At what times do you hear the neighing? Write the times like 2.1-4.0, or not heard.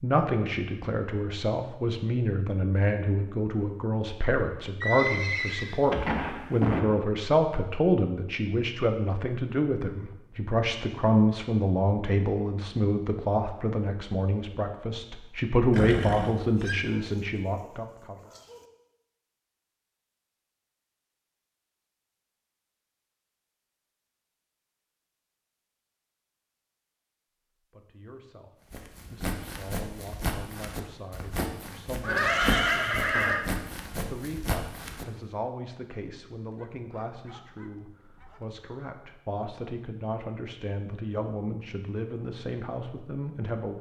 4.8-6.8, 15.7-16.8, 32.0-33.5.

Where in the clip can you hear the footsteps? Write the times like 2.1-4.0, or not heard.
28.7-35.0.